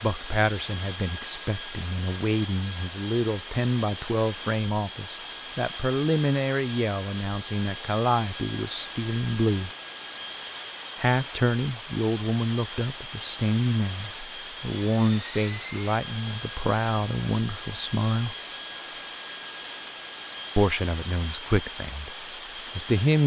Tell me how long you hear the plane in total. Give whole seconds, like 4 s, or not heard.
23 s.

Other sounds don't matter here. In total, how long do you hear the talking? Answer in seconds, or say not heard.
19 s.